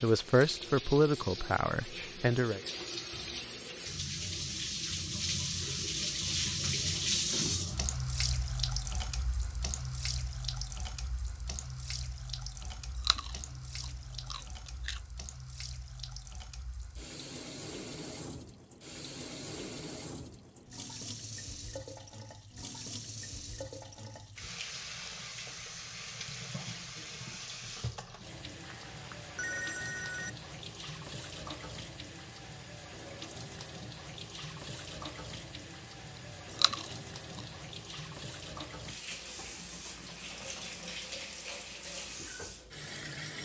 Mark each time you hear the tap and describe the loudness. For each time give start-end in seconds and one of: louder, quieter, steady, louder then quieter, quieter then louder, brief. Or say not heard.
0.0-43.3 quieter.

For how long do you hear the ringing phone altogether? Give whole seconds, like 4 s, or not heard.
2 s.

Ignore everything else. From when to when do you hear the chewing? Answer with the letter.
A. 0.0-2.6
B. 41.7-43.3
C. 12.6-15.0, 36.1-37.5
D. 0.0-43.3
C.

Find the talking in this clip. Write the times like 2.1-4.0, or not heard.
0.0-2.6.